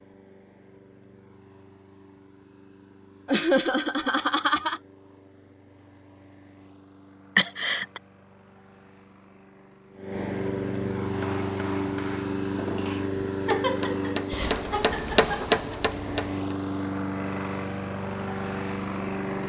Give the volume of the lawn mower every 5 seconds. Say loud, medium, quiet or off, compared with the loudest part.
quiet, quiet, loud, loud.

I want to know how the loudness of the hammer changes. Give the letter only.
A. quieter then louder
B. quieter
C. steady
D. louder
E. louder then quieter
D.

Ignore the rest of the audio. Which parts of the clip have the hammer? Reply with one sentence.
You can hear the hammer from 11.0 to 16.4 s.